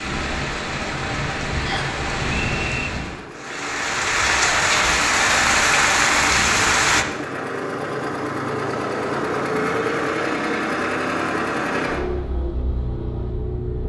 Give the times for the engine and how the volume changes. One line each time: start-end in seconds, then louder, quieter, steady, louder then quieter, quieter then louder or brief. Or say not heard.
0.1-13.8 louder.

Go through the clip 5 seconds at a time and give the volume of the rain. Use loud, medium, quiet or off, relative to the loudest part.
medium, loud, off.